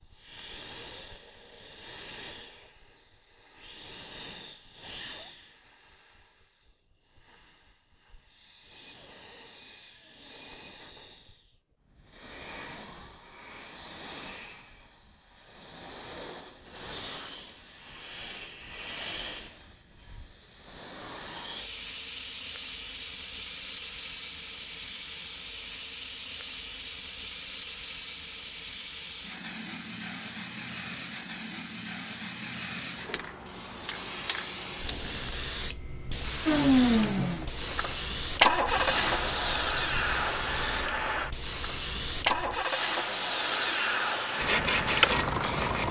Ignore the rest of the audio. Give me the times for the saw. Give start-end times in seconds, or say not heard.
44.4-45.8.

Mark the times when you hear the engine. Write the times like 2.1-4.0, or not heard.
36.5-45.8.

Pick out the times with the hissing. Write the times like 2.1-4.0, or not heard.
0.0-45.8.